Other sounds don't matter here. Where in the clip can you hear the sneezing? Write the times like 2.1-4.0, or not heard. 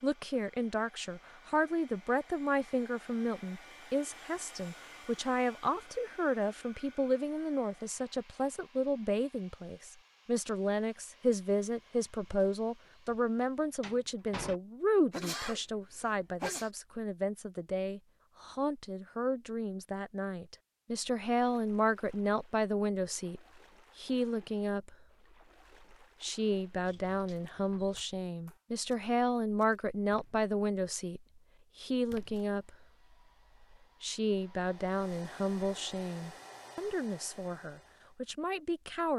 15.1-16.7.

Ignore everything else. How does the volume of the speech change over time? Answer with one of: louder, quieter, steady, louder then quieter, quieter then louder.
steady.